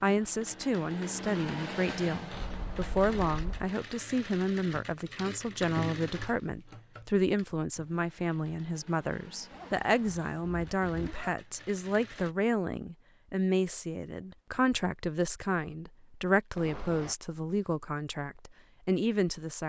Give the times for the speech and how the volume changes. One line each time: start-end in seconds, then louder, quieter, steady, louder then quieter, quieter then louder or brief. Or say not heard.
0.0-19.6 steady.